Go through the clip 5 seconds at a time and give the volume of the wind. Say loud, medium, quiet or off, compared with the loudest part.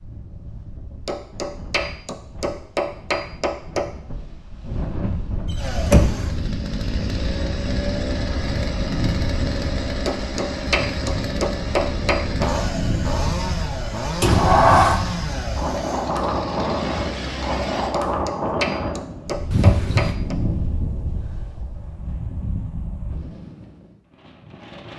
quiet, medium, medium, loud, medium.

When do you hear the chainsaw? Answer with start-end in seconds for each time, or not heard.
5.5-17.9.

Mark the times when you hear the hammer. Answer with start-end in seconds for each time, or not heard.
1.1-3.9, 10.1-12.5, 17.9-20.4.